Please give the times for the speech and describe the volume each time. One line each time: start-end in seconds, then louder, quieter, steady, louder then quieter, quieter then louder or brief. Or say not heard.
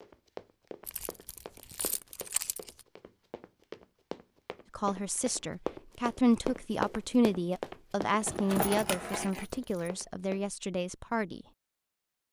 4.8-11.4 quieter.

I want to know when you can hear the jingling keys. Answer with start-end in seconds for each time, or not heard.
0.8-2.9, 8.2-9.9.